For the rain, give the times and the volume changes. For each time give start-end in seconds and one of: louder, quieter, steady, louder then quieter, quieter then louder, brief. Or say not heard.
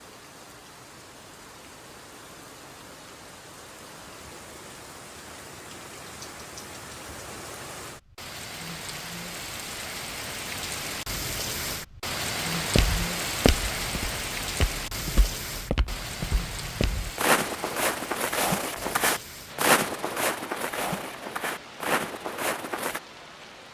0.0-23.7 louder then quieter.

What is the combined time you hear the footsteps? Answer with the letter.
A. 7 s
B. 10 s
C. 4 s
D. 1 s
B.